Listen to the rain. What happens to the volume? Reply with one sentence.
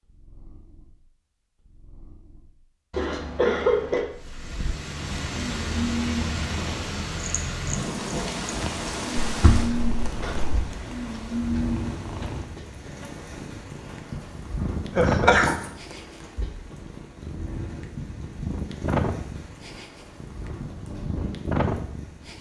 The volume of the rain goes down.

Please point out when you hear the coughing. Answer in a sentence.
You can hear the coughing from 2.9 to 4.0 s, from 9.2 to 10.6 s and from 14.9 to 15.7 s.